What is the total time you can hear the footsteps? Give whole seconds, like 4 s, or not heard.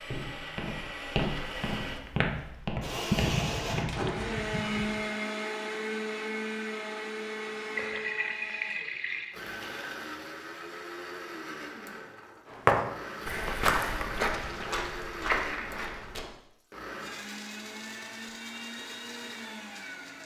8 s.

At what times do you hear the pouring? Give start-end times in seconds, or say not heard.
3.1-5.0, 7.8-9.3, 14.2-15.1.